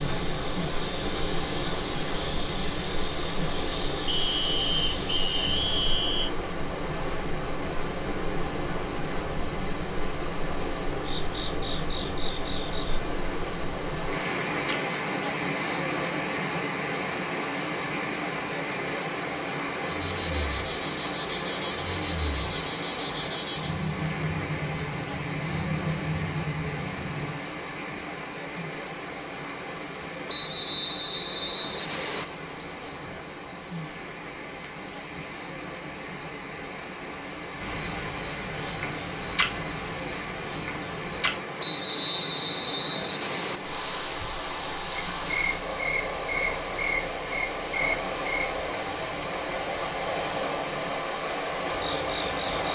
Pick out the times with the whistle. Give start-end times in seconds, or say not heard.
4.0-6.3, 30.2-32.2, 41.6-43.6.